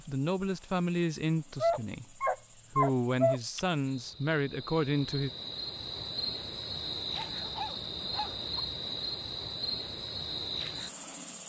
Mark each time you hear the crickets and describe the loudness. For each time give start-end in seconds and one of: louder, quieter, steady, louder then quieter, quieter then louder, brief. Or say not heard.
0.0-11.4 louder.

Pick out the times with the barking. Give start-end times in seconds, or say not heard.
1.6-3.4, 7.1-8.6.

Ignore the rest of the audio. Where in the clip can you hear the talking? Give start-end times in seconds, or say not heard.
0.0-5.3.